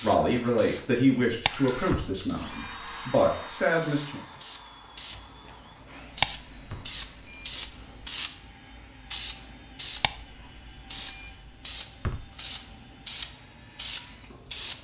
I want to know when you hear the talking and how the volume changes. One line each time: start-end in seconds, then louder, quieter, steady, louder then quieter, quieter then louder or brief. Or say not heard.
0.0-4.2 quieter then louder.